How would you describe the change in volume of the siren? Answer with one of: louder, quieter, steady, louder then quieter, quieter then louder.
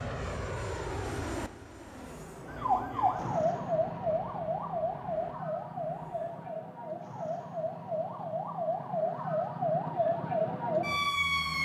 quieter then louder.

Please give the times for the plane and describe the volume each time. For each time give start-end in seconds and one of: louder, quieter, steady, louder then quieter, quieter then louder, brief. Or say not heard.
0.0-6.5 quieter.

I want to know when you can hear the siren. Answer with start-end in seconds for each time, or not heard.
2.5-11.6.